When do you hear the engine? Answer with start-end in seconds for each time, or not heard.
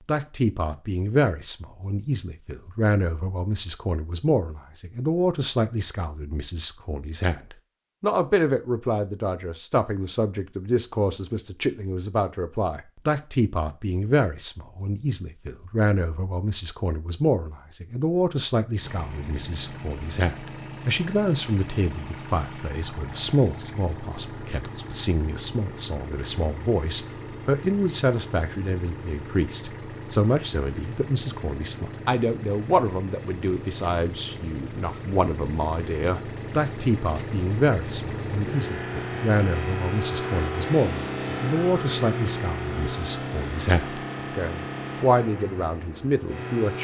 18.8-46.7.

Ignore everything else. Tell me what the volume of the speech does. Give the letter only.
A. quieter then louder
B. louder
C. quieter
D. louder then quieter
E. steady
E.